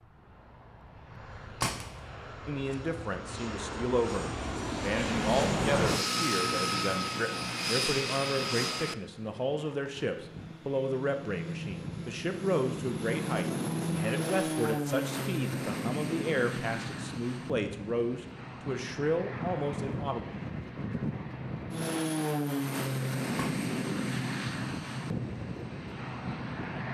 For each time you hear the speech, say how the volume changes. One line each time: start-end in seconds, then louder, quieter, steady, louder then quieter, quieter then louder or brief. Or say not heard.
2.5-20.2 steady.